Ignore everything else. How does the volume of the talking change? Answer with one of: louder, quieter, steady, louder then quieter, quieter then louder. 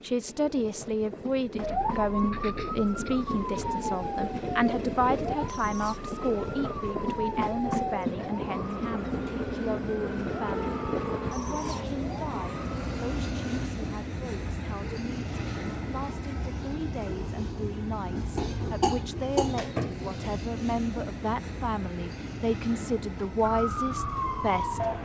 quieter then louder.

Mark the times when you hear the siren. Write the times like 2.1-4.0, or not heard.
1.6-13.7, 23.4-25.0.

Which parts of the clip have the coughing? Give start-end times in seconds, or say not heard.
1.6-3.8, 18.4-20.4.